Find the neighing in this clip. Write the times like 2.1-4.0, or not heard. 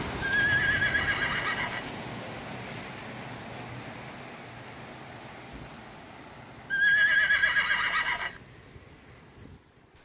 0.2-1.9, 6.7-8.4.